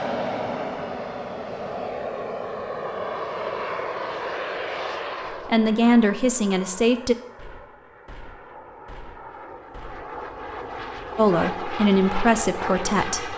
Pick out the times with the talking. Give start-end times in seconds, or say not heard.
5.3-7.2, 11.2-13.3.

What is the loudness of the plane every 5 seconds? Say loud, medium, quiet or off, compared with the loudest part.
loud, medium, loud.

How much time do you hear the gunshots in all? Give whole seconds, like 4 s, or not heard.
3 s.